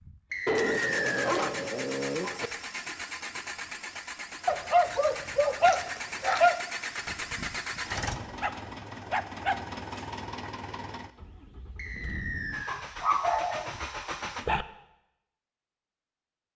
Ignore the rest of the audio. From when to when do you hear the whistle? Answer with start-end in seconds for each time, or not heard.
0.3-1.4, 11.8-12.8.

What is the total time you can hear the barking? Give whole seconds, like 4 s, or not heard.
8 s.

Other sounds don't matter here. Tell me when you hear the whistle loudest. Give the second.
1 s.